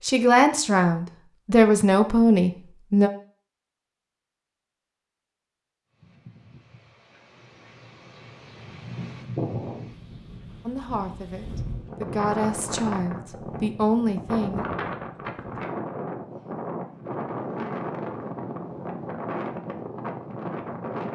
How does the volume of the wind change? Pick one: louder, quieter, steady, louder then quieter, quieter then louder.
louder.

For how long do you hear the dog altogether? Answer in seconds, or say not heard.
not heard.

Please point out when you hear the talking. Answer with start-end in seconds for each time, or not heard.
0.0-3.1, 10.7-14.7.